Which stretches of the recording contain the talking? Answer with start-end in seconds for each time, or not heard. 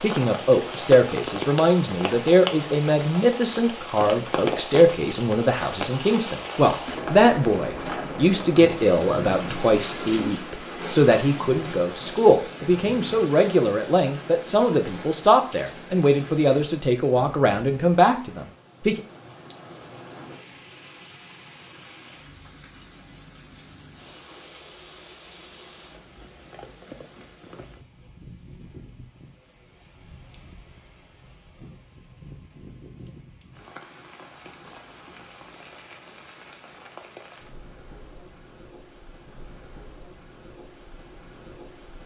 0.0-19.0.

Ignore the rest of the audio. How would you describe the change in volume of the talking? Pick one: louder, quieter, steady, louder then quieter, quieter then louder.
steady.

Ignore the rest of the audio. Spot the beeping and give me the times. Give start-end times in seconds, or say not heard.
not heard.